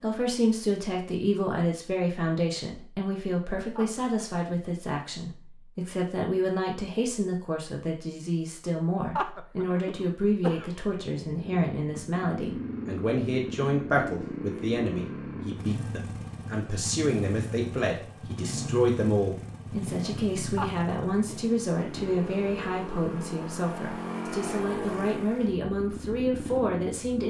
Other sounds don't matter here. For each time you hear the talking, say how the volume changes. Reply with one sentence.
The talking can be heard from 0.0 to 27.2 s, at a steady volume.